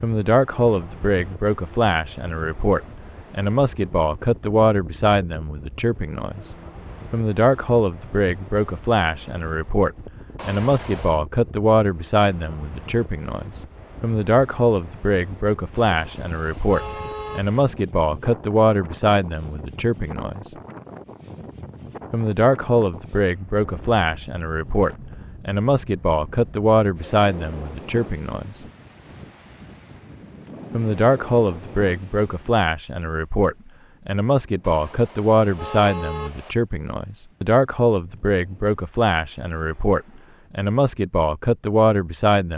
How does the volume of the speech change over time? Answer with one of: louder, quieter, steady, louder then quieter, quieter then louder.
steady.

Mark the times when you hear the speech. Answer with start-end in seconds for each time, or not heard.
0.0-20.6, 22.1-28.6, 30.7-42.5.